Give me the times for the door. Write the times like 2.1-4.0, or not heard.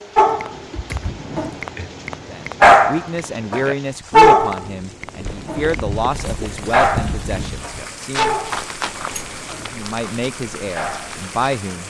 0.6-1.9, 8.8-9.4.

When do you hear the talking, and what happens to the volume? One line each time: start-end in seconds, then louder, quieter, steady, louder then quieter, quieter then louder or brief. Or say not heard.
2.3-8.3 quieter
9.6-11.8 brief.